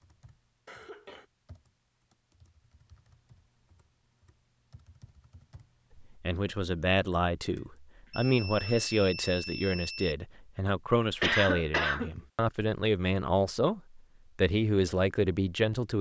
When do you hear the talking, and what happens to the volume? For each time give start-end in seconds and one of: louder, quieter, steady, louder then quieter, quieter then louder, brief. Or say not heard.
6.0-15.9 steady.